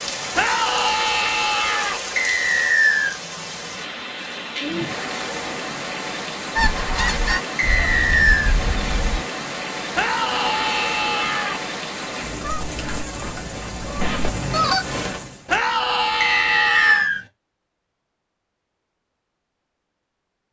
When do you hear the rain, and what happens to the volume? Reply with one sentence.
You can hear the rain from 0.0 to 15.5 s, at a steady volume.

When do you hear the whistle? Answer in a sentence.
The whistle can be heard from 2.1 to 3.1 s, from 7.5 to 8.6 s and from 16.2 to 17.2 s.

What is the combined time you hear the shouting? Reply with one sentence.
The shouting can be heard for 5 seconds in total.